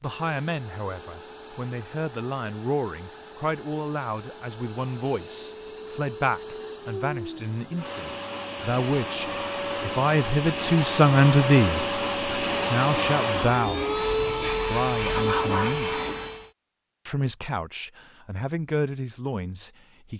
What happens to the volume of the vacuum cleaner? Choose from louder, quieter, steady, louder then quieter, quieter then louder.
louder.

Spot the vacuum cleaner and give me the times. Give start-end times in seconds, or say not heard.
0.0-16.5.